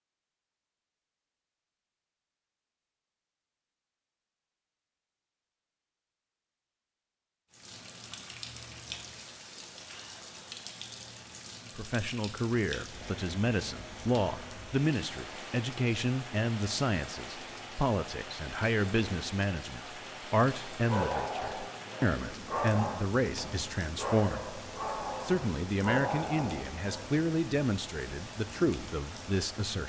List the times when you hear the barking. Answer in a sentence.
The barking can be heard from 20.7 to 27.2 s.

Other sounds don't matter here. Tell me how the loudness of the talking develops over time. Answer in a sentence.
The loudness of the talking stays about the same.